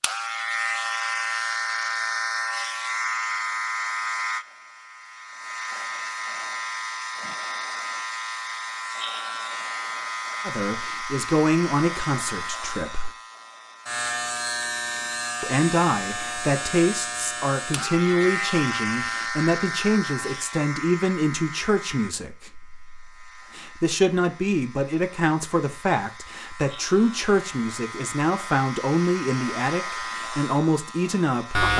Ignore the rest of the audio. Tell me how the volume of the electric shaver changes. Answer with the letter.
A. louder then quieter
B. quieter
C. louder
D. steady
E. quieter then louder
B.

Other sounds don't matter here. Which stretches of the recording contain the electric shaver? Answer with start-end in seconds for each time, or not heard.
0.0-31.7.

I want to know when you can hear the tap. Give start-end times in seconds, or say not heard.
not heard.